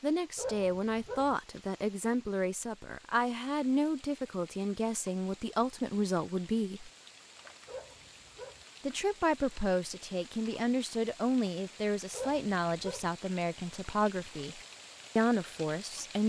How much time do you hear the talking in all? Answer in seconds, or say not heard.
14 s.